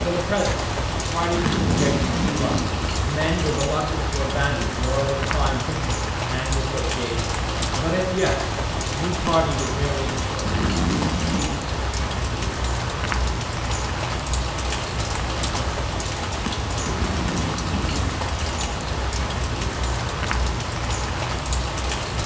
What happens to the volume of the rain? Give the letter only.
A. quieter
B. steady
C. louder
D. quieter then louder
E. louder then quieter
B.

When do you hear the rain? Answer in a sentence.
You can hear the rain from 0.0 to 22.2 s.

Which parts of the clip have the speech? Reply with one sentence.
You can hear the speech from 0.1 to 10.5 s.